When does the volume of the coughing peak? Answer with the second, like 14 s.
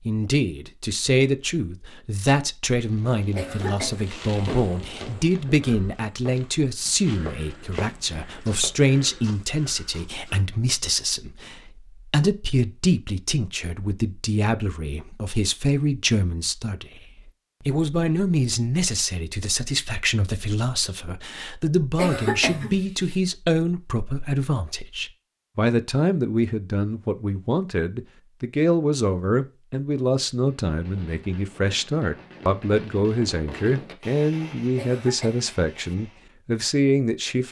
22 s.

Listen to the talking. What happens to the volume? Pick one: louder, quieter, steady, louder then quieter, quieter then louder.
steady.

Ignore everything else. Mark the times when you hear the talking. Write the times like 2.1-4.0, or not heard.
0.0-37.4.